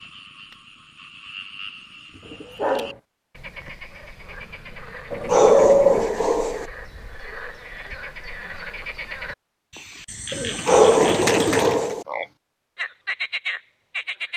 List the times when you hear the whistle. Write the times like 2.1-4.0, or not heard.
not heard.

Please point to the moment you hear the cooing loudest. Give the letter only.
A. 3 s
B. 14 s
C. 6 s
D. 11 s
C.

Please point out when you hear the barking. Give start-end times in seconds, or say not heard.
2.1-3.0, 5.2-6.7, 10.7-12.1.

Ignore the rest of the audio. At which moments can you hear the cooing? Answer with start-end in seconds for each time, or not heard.
2.2-3.0, 5.1-6.0, 10.3-11.8.